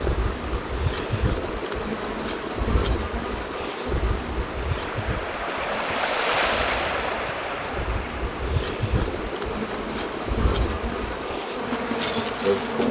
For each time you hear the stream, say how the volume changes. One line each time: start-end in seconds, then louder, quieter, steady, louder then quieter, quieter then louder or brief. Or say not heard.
0.0-12.8 louder then quieter.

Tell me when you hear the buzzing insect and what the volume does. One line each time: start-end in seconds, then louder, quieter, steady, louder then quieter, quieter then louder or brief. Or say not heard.
0.0-12.8 quieter then louder.